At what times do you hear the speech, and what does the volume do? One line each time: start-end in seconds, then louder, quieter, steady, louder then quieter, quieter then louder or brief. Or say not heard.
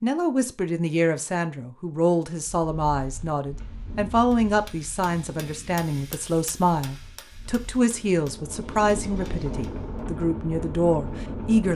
0.0-11.7 steady.